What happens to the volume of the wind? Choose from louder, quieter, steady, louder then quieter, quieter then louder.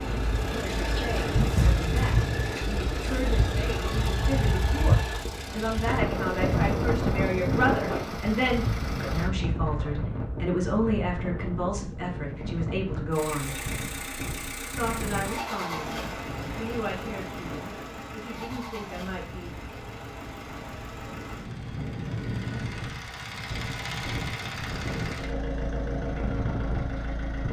quieter then louder.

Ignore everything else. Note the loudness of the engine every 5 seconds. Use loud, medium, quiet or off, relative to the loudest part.
loud, medium, loud, loud, loud, loud.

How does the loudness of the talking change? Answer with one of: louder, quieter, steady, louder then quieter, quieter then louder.
louder then quieter.